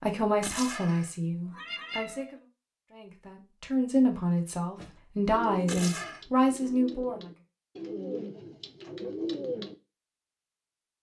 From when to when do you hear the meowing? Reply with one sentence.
The meowing can be heard from 0.4 to 2.4 s and from 5.7 to 6.2 s.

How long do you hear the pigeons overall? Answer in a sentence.
The pigeons can be heard for 5 seconds in total.